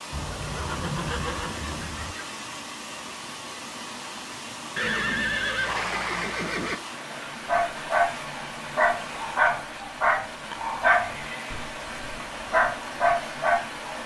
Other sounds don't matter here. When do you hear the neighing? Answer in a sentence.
You can hear the neighing from 0.1 to 2.1 s, from 4.8 to 6.8 s and from 10.5 to 11.4 s.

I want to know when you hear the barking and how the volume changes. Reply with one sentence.
The barking can be heard from 7.5 to 13.8 s, getting quieter then louder.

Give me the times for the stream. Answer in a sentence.
You can hear the stream from 0.0 to 14.0 s.